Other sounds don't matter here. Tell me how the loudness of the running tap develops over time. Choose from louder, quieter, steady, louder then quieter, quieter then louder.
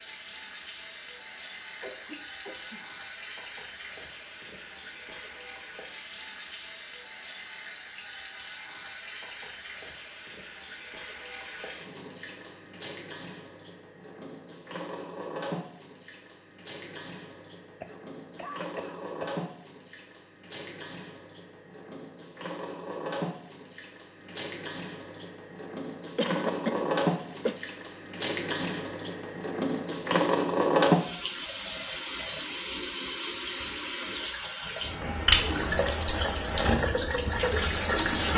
louder.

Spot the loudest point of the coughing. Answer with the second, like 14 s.
27 s.